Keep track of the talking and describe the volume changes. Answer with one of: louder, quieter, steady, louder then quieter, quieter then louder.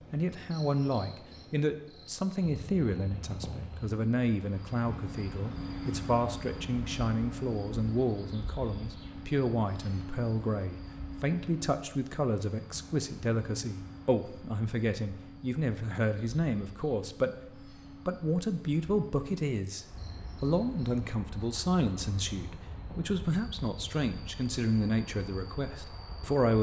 steady.